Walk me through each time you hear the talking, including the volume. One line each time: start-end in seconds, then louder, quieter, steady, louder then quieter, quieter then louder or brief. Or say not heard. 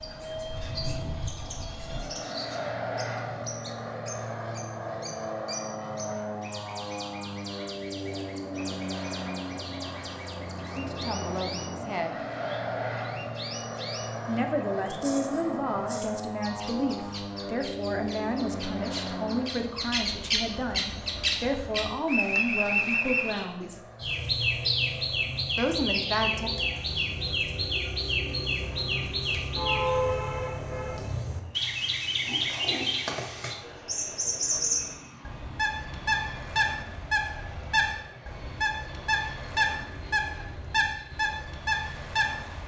10.8-12.2 brief
14.2-23.8 steady
25.6-26.5 brief.